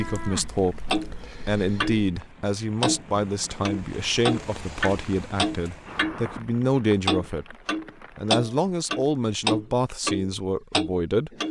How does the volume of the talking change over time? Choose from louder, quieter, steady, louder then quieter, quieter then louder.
steady.